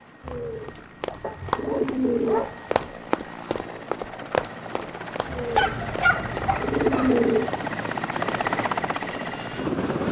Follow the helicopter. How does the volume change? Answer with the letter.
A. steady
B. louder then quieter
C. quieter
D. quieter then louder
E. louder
E.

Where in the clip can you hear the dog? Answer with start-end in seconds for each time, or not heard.
1.2-2.7, 5.5-7.2.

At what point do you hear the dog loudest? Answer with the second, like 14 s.
6 s.